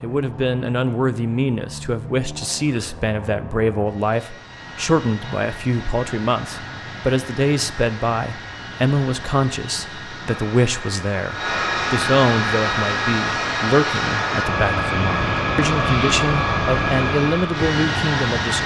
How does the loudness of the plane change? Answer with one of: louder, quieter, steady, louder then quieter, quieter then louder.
louder.